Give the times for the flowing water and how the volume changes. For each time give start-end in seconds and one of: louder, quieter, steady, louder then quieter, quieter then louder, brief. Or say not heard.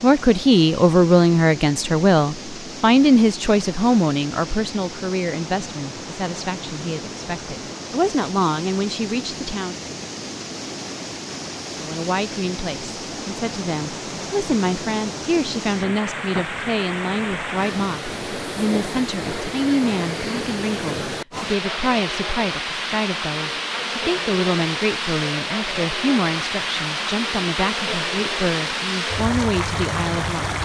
0.0-30.5 louder.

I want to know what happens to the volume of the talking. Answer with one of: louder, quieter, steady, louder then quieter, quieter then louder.
quieter.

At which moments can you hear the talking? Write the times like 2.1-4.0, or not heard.
0.0-9.8, 11.8-30.5.